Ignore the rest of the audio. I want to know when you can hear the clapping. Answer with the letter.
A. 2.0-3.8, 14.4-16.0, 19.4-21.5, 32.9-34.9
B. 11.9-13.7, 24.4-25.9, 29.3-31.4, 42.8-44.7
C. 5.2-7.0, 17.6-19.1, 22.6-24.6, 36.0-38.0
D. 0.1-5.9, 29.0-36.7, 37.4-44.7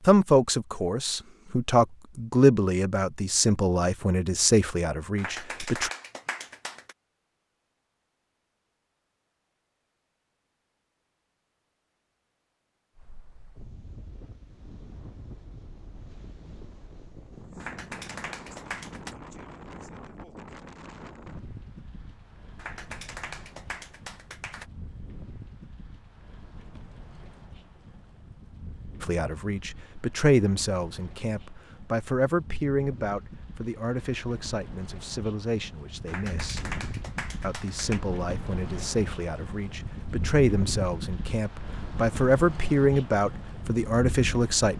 C.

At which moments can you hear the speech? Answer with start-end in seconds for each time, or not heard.
0.1-5.9, 29.0-36.7, 37.4-44.7.